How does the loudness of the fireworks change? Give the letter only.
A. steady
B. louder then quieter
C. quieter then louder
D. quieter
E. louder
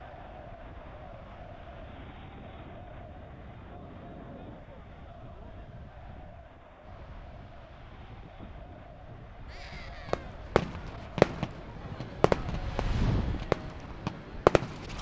C.